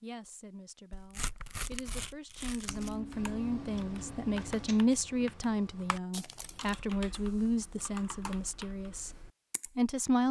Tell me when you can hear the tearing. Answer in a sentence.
The tearing can be heard from 0.9 to 3.0 s and from 6.1 to 6.8 s.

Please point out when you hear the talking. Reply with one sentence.
The talking can be heard from 0.0 to 9.1 s and from 9.8 to 10.2 s.